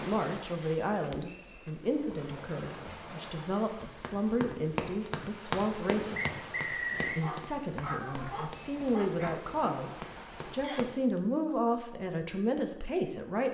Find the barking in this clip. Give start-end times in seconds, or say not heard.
7.2-9.4.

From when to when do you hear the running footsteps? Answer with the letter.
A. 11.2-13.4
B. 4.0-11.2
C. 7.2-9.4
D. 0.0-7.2
B.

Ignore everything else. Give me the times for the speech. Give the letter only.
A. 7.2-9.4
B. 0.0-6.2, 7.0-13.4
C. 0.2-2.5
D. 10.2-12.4
B.